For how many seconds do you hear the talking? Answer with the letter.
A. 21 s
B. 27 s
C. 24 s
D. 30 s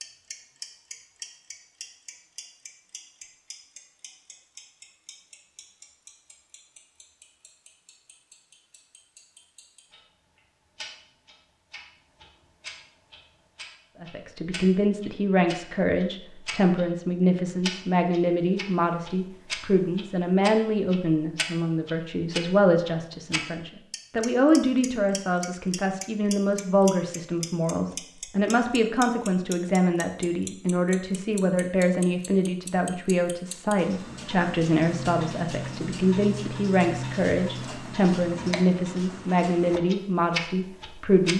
B.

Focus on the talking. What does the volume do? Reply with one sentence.
The volume of the talking stays about the same.